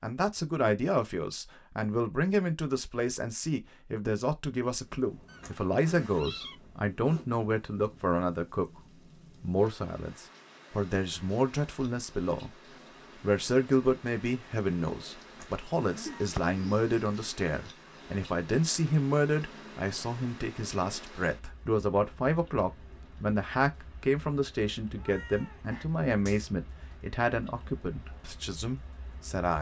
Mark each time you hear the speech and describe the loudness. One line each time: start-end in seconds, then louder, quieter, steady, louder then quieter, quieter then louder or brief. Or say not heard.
0.0-29.5 steady.